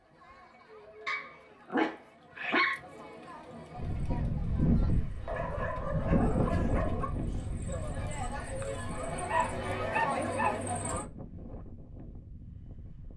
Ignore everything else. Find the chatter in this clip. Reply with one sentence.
The chatter can be heard from 0.0 to 11.1 s.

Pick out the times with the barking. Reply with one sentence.
The barking can be heard from 1.1 to 2.8 s, from 5.2 to 7.2 s and from 8.9 to 10.8 s.